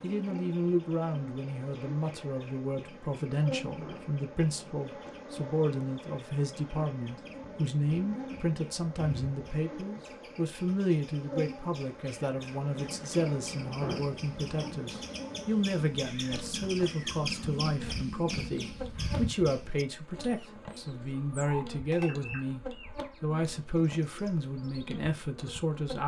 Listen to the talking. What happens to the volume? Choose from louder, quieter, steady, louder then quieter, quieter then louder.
steady.